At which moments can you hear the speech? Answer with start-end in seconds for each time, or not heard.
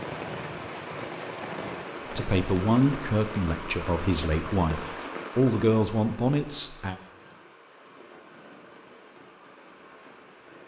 2.1-7.0.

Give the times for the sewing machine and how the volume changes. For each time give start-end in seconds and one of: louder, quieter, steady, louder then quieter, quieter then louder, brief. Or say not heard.
not heard.